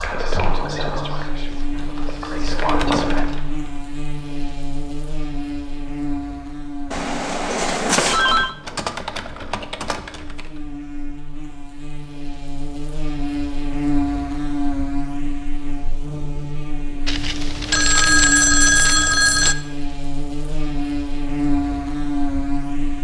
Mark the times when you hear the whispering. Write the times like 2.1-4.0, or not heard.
0.0-3.2.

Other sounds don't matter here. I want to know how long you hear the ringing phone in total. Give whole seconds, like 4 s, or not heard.
4 s.